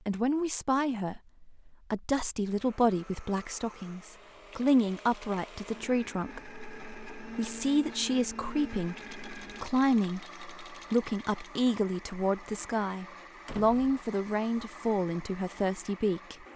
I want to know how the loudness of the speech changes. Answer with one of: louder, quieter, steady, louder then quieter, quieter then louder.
steady.